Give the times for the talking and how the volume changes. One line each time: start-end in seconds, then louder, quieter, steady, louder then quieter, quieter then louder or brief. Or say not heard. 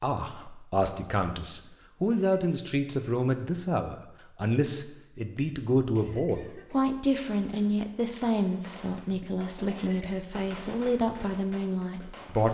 0.0-12.5 steady.